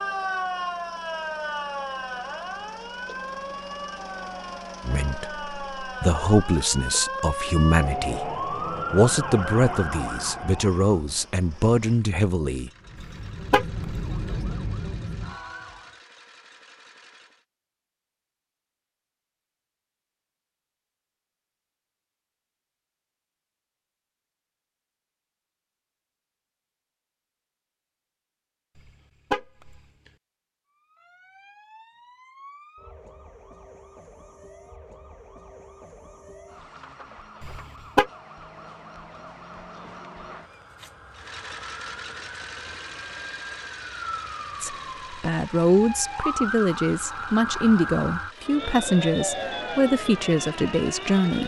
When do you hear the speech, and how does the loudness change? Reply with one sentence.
You can hear the speech from 4.8 to 12.7 s, at a steady volume; and from 44.6 to 51.4 s, at a steady volume.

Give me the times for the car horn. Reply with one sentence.
The car horn can be heard from 13.0 to 13.8 s, from 28.8 to 29.8 s and from 37.4 to 38.1 s.